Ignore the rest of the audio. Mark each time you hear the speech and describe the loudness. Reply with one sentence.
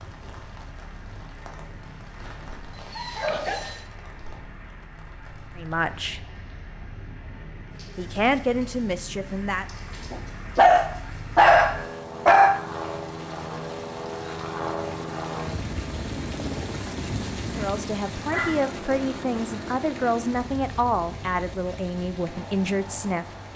You can hear the speech briefly from 5.5 to 6.2 s; briefly from 8.0 to 9.7 s; and from 17.6 to 23.2 s, at a steady volume.